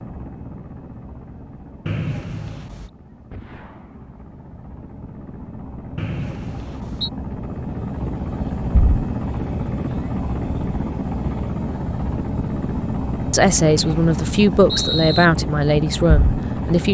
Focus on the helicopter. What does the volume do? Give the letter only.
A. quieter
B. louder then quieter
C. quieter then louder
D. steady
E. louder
E.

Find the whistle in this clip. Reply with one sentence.
You can hear the whistle from 1.9 to 2.9 s, from 6.0 to 7.1 s and from 13.7 to 15.3 s.